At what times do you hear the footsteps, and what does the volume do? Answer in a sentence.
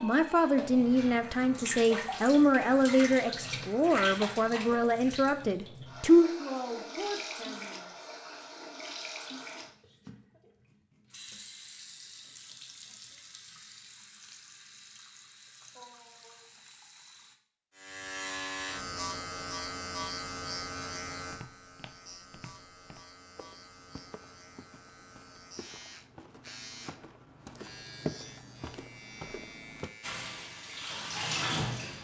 You can hear the footsteps from 21.2 to 29.9 s, getting louder.